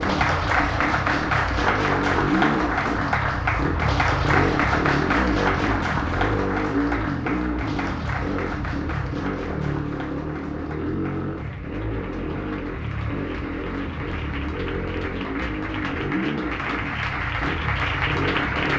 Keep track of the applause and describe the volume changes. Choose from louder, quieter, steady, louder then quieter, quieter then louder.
quieter then louder.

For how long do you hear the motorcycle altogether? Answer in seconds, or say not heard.
19 s.